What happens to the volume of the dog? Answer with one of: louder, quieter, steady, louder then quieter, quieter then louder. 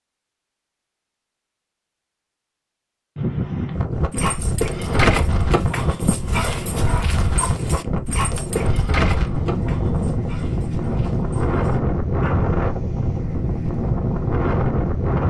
quieter.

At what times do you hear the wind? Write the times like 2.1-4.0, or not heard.
3.1-15.2.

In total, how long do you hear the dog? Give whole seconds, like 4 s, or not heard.
8 s.